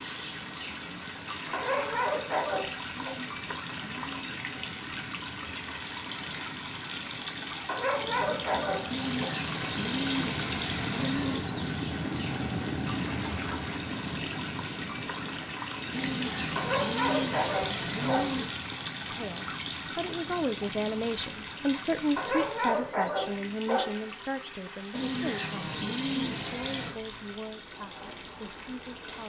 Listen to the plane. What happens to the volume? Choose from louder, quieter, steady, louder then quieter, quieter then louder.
louder then quieter.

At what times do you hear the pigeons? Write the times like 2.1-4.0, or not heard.
3.0-4.5, 8.9-11.5, 15.9-18.6, 24.9-26.9.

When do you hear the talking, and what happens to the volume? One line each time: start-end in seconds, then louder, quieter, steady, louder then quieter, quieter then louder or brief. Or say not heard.
19.1-29.2 quieter.